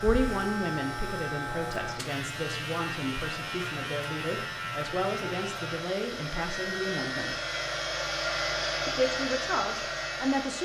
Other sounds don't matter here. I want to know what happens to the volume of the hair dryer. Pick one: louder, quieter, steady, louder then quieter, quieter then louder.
louder.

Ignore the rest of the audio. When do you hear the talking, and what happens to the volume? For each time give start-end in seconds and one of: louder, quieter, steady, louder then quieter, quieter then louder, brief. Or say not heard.
0.0-7.4 steady
8.8-10.6 brief.